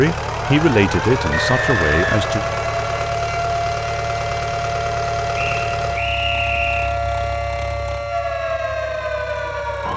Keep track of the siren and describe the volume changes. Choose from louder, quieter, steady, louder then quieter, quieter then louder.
steady.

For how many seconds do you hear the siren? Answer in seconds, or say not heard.
10 s.